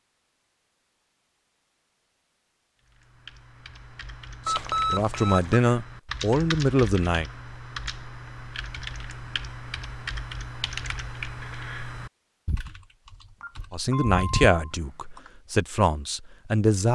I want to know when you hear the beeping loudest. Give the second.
5 s.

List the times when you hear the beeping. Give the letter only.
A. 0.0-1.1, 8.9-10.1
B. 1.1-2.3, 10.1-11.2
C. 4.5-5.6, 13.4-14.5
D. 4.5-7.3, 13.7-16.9
C.